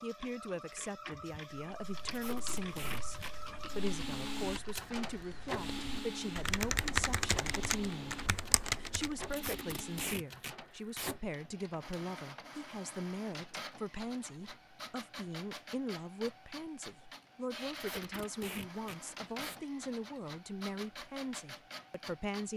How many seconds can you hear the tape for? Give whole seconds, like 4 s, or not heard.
5 s.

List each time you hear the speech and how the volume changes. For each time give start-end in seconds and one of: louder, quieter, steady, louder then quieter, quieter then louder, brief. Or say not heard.
0.0-22.5 steady.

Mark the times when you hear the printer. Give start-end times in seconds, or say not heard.
0.0-22.5.